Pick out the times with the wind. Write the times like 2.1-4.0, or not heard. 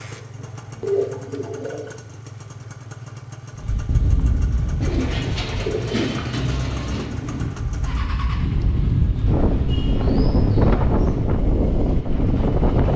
3.5-12.9.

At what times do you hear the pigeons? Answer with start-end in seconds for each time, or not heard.
0.1-1.9, 4.8-7.1, 9.7-11.3.